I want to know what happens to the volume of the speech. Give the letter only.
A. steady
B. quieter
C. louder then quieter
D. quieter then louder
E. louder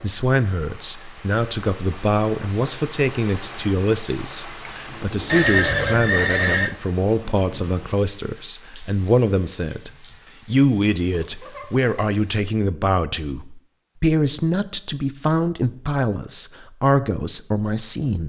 A.